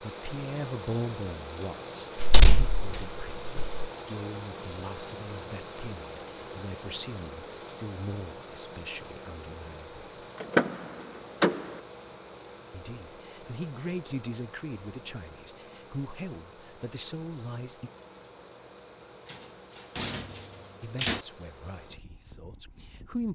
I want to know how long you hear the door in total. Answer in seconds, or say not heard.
5 s.